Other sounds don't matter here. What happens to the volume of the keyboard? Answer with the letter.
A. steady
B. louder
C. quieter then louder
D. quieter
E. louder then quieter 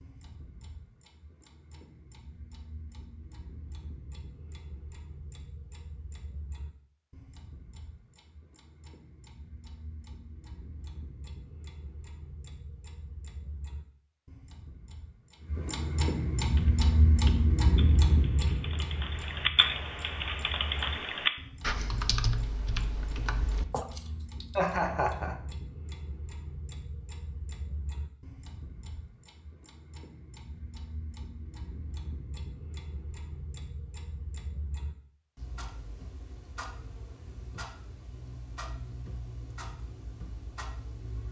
E.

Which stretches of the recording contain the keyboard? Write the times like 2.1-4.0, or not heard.
16.4-24.4.